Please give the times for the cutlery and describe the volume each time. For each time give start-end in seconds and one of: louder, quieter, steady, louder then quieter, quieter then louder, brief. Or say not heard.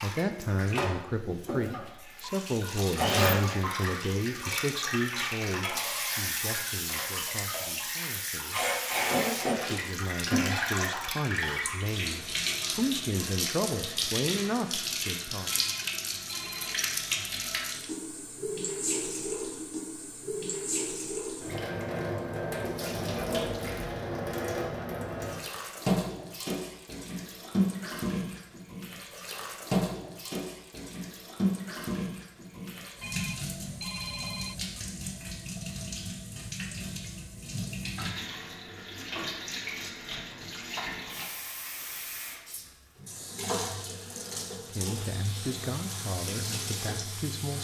not heard.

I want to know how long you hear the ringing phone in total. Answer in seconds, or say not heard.
3 s.